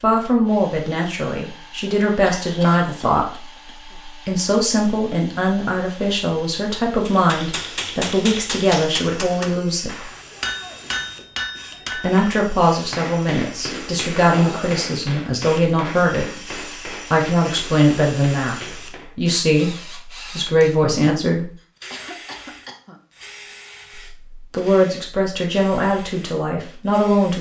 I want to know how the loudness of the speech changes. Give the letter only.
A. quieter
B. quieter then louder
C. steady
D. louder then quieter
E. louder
C.